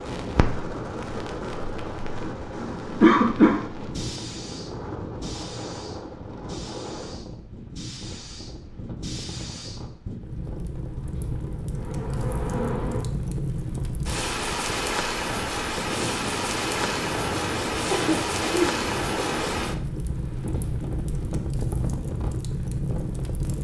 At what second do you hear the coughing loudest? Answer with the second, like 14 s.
3 s.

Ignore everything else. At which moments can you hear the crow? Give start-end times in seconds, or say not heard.
not heard.